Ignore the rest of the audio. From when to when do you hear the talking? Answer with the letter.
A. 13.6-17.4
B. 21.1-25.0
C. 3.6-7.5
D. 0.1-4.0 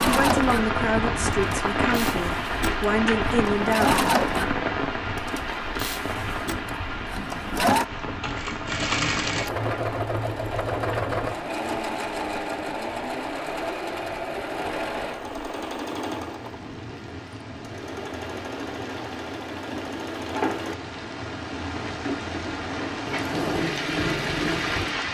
D.